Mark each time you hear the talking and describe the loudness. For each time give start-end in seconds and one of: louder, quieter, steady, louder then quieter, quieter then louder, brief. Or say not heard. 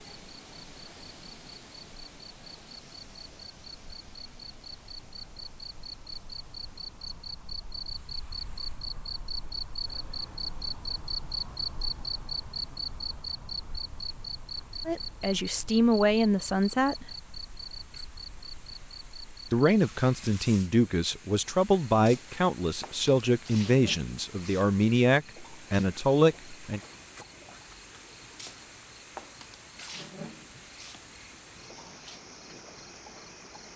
14.8-17.1 brief
19.5-26.8 steady.